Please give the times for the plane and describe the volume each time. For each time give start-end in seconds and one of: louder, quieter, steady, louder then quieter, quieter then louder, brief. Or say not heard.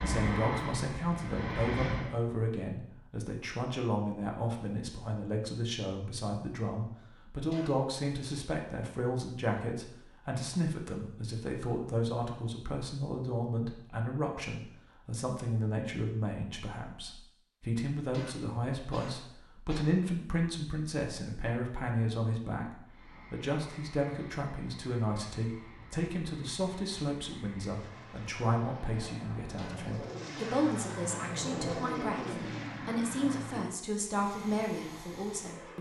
0.0-2.1 brief
22.9-35.7 louder then quieter.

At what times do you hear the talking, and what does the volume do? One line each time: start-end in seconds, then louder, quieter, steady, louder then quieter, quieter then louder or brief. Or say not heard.
0.0-35.7 steady.